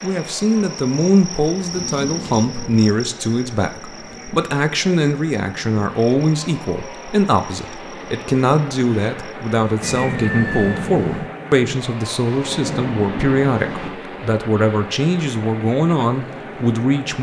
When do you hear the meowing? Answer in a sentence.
You can hear the meowing from 1.8 to 2.9 s and from 9.8 to 11.3 s.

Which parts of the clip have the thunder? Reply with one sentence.
The thunder can be heard from 12.2 to 13.9 s.